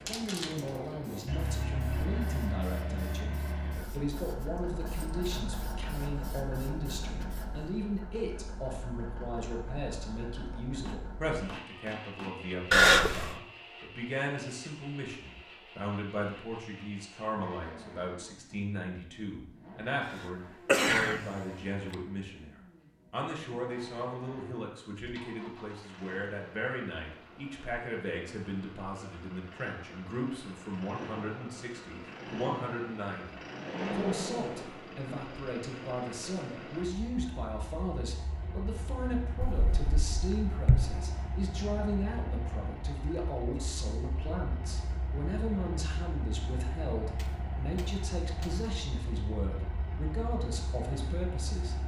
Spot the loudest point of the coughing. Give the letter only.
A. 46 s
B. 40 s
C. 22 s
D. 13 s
D.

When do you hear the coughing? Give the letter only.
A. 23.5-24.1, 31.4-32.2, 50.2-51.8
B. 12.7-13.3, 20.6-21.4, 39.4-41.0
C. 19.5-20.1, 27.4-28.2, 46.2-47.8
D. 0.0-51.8
B.